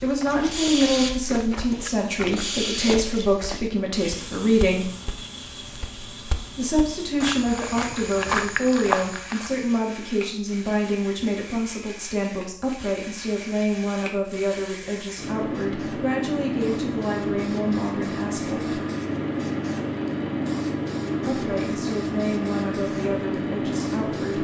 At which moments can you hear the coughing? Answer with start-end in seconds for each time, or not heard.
not heard.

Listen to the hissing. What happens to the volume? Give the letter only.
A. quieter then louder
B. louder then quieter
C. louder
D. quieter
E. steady
A.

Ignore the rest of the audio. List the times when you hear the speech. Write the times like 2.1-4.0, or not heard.
0.0-4.9, 6.5-18.8, 21.2-24.3.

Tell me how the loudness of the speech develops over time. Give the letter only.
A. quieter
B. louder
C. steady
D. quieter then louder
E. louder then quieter
A.